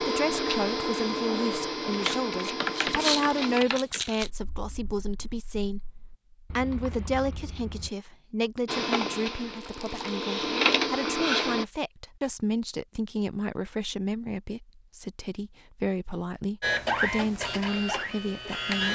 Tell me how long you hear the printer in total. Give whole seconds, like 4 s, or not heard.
9 s.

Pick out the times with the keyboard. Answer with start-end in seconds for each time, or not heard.
1.9-7.9.